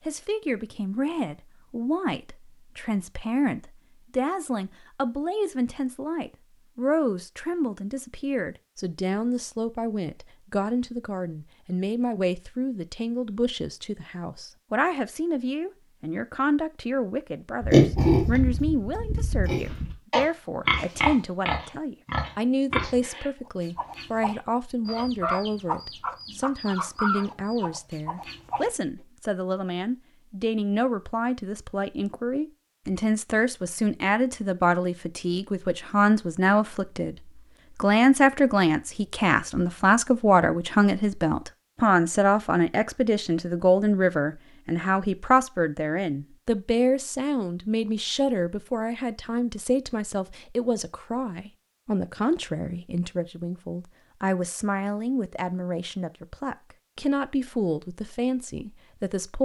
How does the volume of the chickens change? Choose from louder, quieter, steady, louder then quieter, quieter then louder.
louder then quieter.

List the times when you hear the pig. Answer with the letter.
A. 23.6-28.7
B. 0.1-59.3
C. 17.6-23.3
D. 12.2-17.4
C.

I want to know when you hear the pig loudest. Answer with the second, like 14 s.
18 s.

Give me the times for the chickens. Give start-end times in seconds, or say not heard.
23.6-28.7.